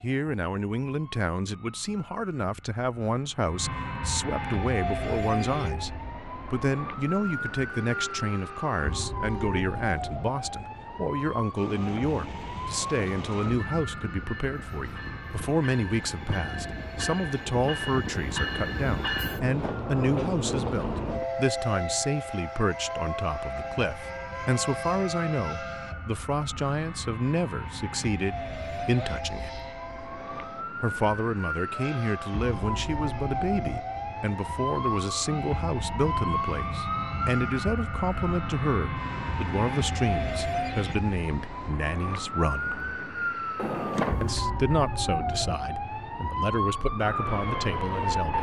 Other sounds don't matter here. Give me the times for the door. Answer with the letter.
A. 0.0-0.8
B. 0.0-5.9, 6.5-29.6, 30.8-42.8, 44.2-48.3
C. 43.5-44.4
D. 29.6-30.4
C.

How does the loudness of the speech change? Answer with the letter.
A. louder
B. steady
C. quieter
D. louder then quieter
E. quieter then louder
B.